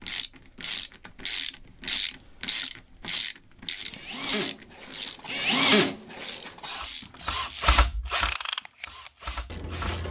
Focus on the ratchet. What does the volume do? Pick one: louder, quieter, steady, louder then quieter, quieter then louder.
quieter.